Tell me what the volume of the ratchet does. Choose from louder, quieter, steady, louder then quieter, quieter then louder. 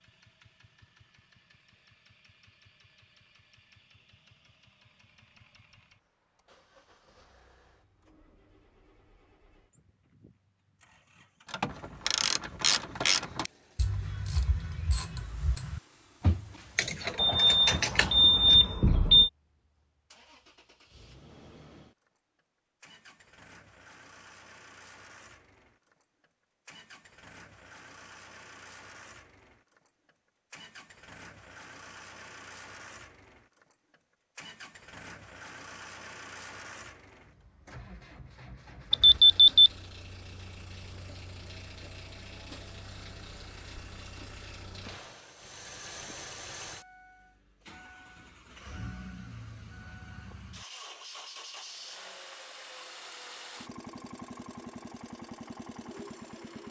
quieter then louder.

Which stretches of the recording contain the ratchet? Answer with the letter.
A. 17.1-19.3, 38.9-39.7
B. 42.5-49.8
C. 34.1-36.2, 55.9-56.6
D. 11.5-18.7
D.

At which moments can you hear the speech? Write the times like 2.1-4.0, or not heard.
not heard.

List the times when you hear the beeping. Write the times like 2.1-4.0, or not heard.
17.1-19.3, 38.9-39.7.